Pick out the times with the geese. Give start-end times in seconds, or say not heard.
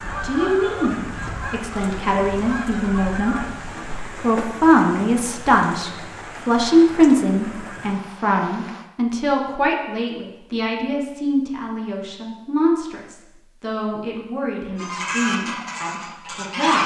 0.0-3.8, 14.8-16.8.